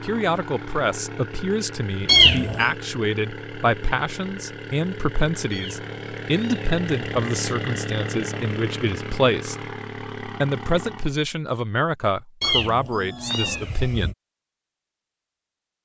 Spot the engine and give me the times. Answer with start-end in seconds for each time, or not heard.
0.0-11.2.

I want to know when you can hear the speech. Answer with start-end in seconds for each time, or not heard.
0.0-9.6, 10.2-14.2.